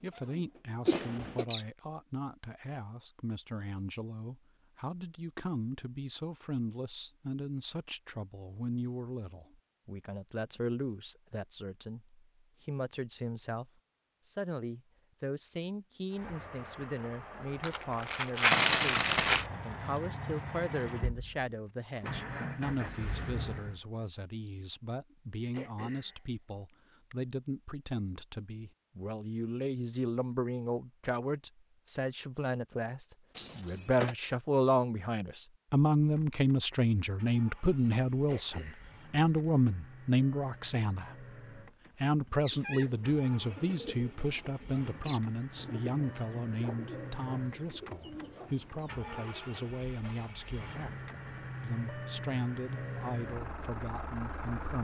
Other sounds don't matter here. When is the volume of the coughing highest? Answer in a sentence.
The volume of the coughing peaks at 1 second.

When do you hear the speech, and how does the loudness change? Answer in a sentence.
The speech can be heard from 0.0 to 41.2 s, getting louder; and from 42.0 to 54.7 s, getting quieter.